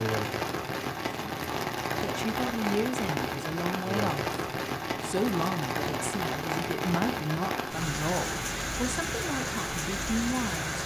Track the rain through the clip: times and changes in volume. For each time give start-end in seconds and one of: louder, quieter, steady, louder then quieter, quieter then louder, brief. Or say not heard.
0.0-10.8 steady.